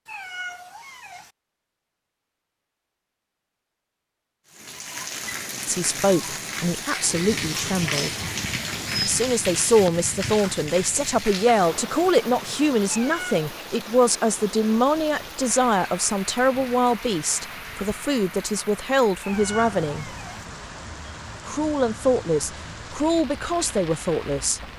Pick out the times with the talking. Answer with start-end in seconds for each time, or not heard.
5.7-8.2, 9.0-20.1, 21.4-24.6.